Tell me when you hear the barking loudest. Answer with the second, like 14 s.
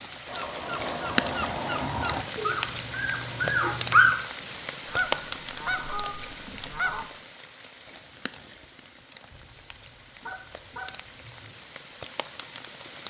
4 s.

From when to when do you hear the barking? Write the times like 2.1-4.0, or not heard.
2.4-4.2.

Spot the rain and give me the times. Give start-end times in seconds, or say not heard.
0.0-13.0.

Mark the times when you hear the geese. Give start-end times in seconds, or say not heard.
0.2-2.2, 4.8-7.1, 9.3-11.6.